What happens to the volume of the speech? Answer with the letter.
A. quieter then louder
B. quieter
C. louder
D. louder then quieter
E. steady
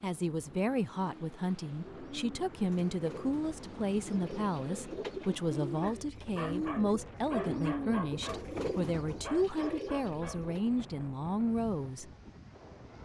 E.